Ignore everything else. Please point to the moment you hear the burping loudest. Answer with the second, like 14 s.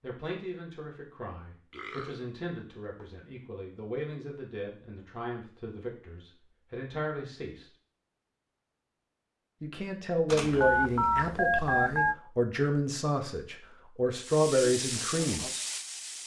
2 s.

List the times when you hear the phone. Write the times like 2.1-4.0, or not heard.
10.2-12.2.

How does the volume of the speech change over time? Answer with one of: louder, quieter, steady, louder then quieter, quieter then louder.
louder.